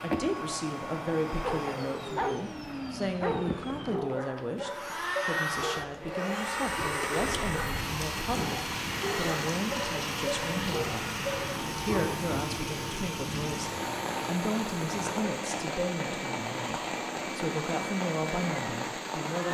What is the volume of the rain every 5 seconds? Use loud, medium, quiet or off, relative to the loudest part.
off, loud, loud, loud.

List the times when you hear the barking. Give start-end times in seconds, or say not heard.
1.4-12.2.